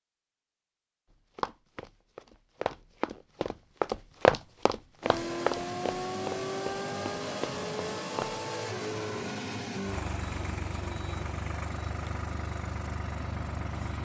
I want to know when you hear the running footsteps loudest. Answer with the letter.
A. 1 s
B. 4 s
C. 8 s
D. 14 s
B.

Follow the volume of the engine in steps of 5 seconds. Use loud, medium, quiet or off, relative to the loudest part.
off, loud, loud.